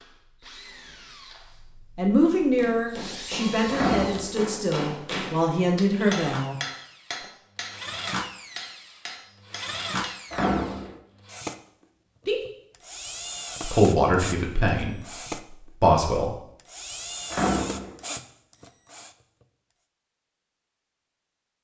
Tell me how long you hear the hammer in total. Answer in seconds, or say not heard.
8 s.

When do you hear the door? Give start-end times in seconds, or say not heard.
3.7-4.3, 10.3-10.9, 17.3-17.9.